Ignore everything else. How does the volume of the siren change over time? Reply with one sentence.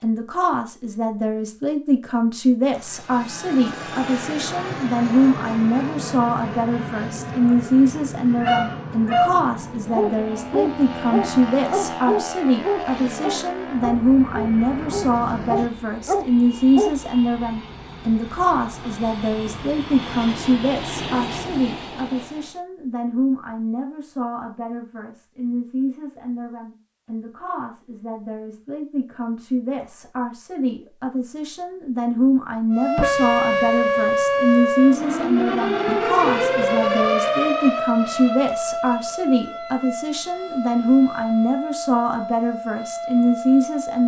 The volume of the siren goes down.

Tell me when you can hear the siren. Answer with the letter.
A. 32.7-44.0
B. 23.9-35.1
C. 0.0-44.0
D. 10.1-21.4
A.